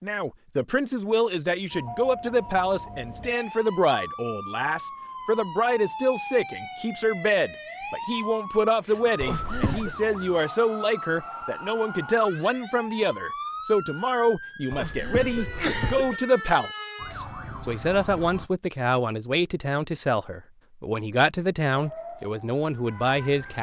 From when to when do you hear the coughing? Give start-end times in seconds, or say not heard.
9.2-9.9, 14.7-16.2.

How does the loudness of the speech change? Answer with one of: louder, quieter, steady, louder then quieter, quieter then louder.
steady.